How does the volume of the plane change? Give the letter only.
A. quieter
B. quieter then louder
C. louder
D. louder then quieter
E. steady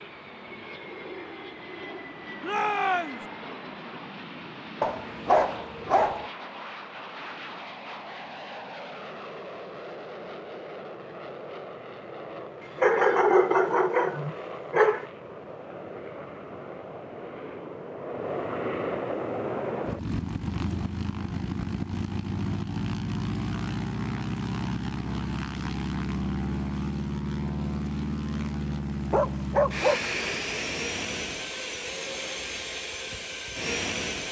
C.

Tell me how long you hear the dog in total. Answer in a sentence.
You can hear the dog for 5 seconds altogether.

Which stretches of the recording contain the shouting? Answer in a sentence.
The shouting can be heard from 2.4 to 3.2 s.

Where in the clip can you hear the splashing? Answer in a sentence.
You can't hear the splashing here.